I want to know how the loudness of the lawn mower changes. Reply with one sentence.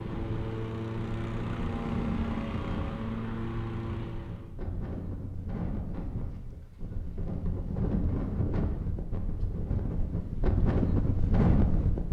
The loudness of the lawn mower stays about the same.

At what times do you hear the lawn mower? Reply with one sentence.
The lawn mower can be heard from 0.0 to 4.5 s.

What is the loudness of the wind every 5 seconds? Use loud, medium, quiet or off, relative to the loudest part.
medium, medium, loud.